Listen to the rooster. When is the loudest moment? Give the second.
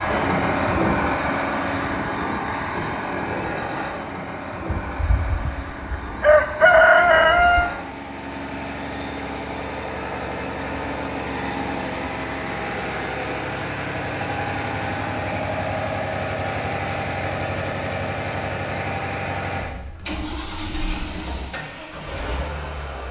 7 s.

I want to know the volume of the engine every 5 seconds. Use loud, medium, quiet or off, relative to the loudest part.
loud, medium, loud, loud, medium.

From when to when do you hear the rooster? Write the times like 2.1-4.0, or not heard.
4.7-7.7.